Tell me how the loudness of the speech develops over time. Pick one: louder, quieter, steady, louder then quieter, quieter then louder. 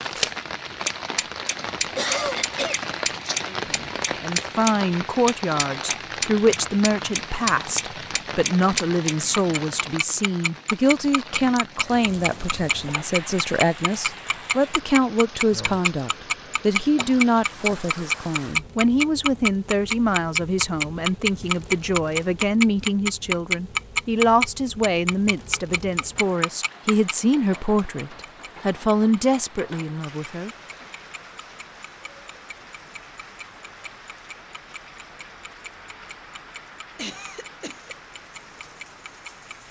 steady.